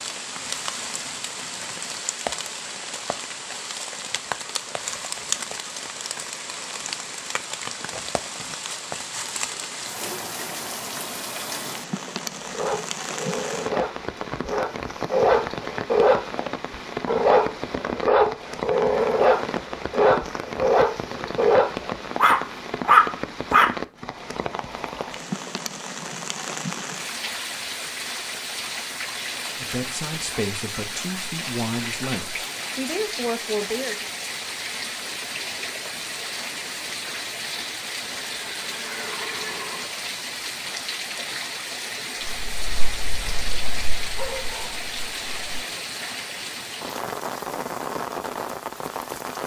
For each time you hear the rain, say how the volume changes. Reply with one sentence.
You can hear the rain from 0.0 to 49.4 s, at a steady volume.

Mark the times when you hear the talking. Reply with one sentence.
You can hear the talking from 29.6 to 34.0 s.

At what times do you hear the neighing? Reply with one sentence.
The neighing can be heard from 38.5 to 39.9 s.